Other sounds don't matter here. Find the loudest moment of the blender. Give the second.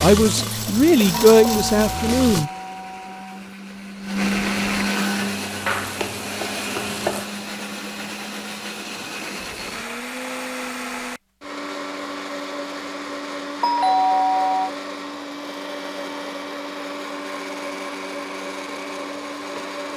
5 s.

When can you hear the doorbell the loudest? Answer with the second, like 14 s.
14 s.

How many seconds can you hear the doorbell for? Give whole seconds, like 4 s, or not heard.
3 s.